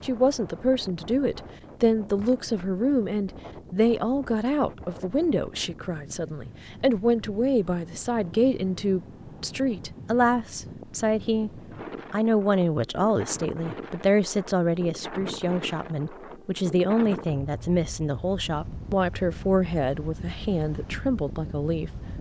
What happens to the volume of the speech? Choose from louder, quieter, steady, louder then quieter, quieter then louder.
steady.